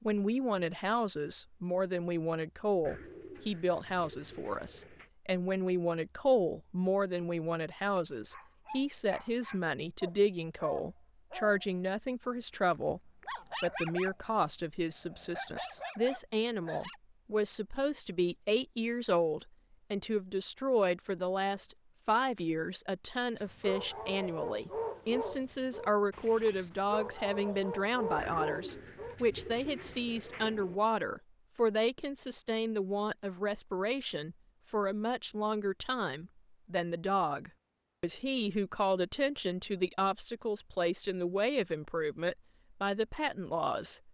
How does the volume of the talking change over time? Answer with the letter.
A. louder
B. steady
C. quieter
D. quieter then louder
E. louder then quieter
B.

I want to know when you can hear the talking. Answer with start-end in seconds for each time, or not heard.
0.0-44.1.